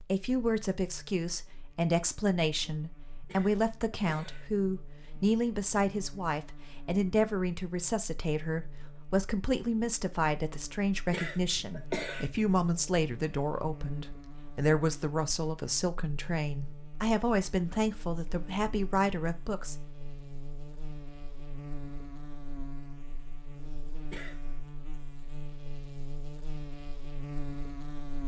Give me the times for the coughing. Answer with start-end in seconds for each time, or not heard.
3.2-4.5, 11.1-12.2, 24.1-24.6.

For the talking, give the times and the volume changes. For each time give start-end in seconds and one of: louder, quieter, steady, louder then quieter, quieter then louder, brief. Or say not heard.
0.0-19.8 steady.